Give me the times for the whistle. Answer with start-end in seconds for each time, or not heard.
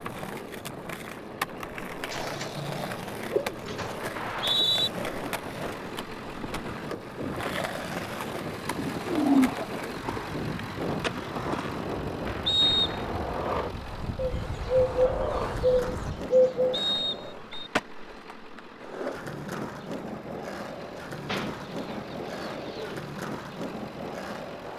4.2-4.9, 12.4-13.1, 16.7-17.7.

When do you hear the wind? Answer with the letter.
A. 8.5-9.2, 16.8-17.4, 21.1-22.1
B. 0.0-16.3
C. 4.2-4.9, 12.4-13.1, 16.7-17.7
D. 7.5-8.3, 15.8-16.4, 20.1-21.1
B.